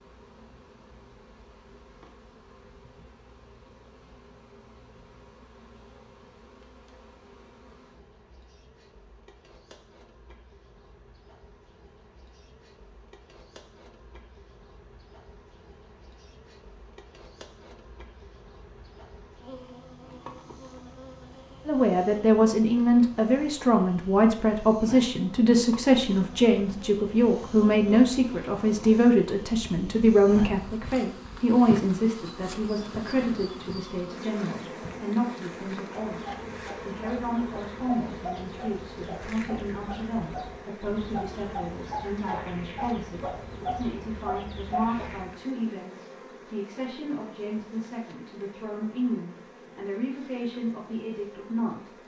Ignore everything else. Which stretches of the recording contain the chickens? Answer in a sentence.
The chickens can be heard from 36.0 to 45.2 s.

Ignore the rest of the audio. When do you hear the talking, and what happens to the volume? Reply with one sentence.
The talking can be heard from 21.6 to 51.9 s, getting quieter.